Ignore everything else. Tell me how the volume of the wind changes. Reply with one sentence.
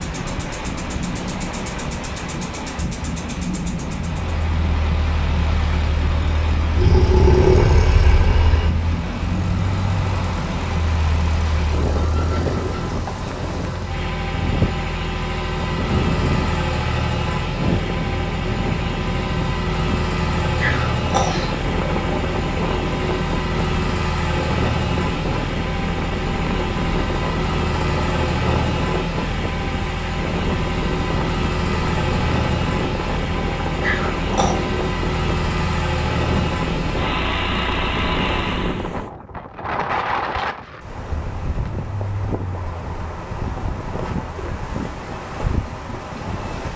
The volume of the wind stays about the same.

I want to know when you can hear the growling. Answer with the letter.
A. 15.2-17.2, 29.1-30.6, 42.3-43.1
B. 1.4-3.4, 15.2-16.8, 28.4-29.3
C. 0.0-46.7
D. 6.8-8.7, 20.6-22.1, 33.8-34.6
D.